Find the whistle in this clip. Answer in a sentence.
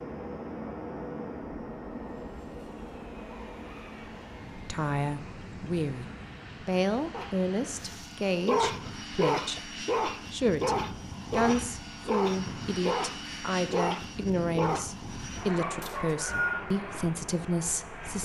The whistle can be heard from 15.8 to 16.6 s.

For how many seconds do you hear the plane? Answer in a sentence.
The plane can be heard for 18 seconds in total.